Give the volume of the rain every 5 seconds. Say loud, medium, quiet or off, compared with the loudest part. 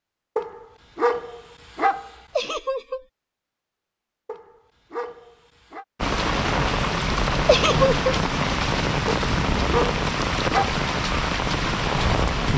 off, loud, loud.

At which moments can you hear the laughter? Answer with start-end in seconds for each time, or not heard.
2.4-3.0, 7.5-8.0.